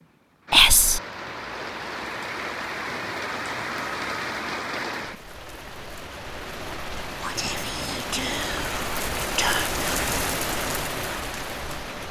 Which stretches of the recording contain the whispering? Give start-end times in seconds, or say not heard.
0.5-1.0, 7.2-10.1.